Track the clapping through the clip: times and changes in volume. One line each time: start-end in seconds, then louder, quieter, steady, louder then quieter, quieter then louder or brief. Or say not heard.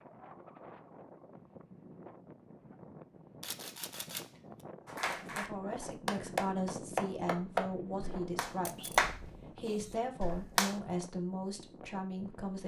4.8-10.8 louder then quieter.